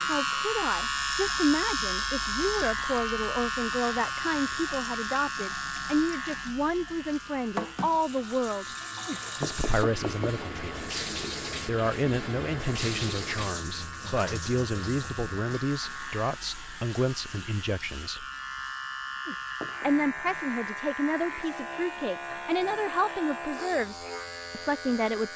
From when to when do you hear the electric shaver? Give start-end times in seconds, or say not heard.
0.0-25.3.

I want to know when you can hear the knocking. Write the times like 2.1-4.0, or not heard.
9.1-10.4, 19.2-19.9.